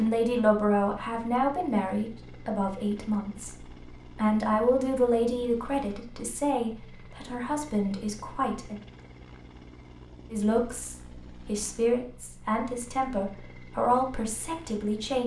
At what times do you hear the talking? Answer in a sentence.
The talking can be heard from 0.0 to 8.8 s and from 10.3 to 15.2 s.